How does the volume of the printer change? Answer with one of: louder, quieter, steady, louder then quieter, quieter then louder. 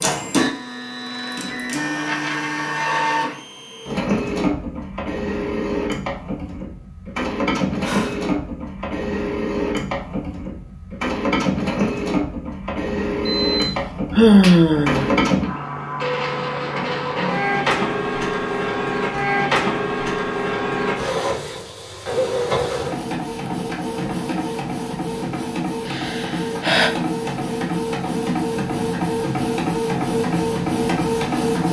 steady.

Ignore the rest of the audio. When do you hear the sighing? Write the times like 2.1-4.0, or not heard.
7.8-8.3, 13.2-15.2, 25.9-26.9.